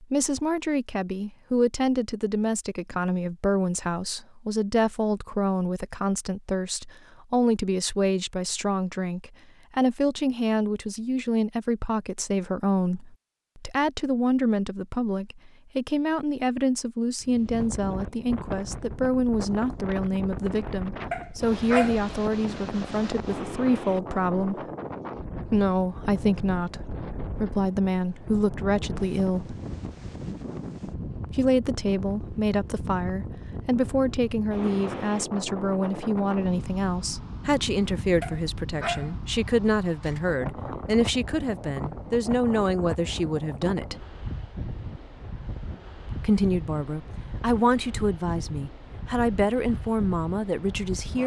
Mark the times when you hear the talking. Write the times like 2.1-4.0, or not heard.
0.0-24.6, 25.4-29.6, 31.3-44.0, 46.0-51.2.